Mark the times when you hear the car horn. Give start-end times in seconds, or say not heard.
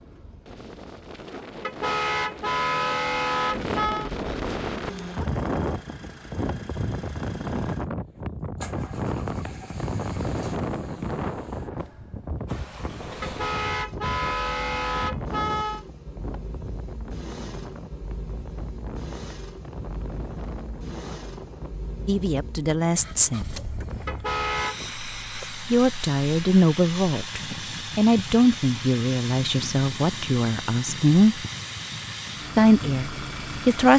1.6-4.1, 13.2-15.8, 24.1-24.8.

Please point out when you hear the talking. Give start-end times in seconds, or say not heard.
22.1-23.4, 25.7-31.4, 32.5-33.9.